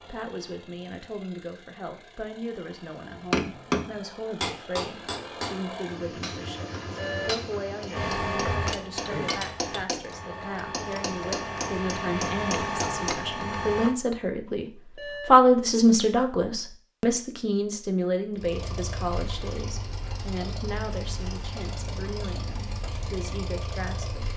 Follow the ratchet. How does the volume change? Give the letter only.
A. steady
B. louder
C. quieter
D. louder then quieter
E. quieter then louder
E.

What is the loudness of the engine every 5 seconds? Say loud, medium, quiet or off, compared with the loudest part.
medium, loud, off, loud, loud.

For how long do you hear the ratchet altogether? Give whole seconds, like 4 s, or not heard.
6 s.